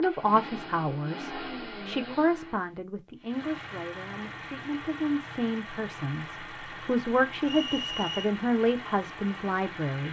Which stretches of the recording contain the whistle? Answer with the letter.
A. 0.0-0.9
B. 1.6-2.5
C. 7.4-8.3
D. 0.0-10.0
C.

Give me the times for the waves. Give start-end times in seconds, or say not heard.
not heard.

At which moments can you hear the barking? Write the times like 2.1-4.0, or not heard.
not heard.